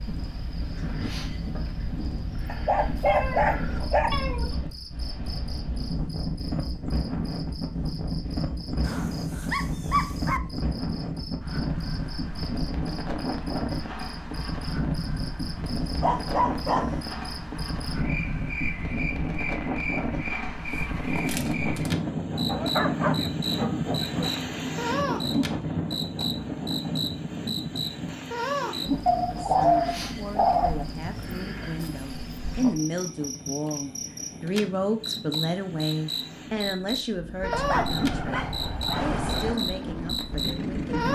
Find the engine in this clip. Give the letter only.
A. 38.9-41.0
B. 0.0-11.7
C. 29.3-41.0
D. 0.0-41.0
A.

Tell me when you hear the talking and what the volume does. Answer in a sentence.
The talking can be heard from 29.3 to 41.0 s, getting louder then quieter.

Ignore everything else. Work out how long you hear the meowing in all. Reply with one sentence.
You can hear the meowing for 2 seconds altogether.